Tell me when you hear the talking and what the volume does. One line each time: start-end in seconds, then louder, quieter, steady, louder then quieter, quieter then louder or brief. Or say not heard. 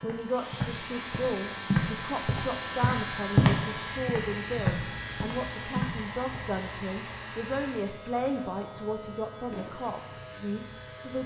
0.0-11.2 steady.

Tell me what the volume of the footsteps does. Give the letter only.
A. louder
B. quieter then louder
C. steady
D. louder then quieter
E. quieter
D.